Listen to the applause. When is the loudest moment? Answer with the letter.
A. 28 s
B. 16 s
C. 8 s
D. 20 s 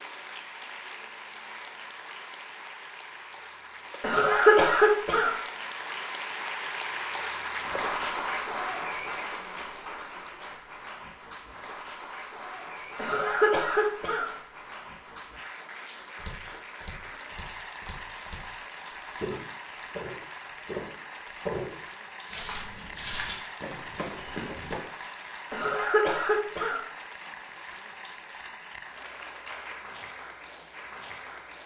C.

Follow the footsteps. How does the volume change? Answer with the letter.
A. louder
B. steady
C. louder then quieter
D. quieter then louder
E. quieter
A.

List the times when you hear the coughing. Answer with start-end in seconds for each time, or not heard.
4.0-5.3, 12.9-14.2, 25.5-26.8.